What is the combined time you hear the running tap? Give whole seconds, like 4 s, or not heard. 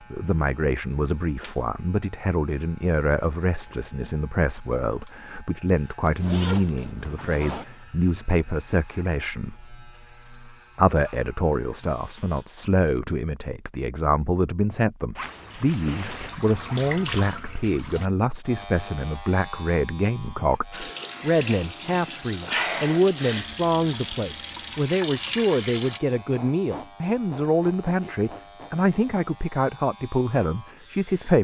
8 s.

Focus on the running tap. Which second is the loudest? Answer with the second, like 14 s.
23 s.